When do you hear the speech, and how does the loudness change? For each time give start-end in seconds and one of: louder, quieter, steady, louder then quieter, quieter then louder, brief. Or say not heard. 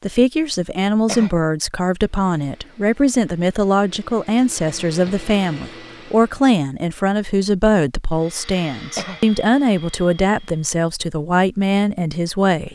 0.0-12.7 steady.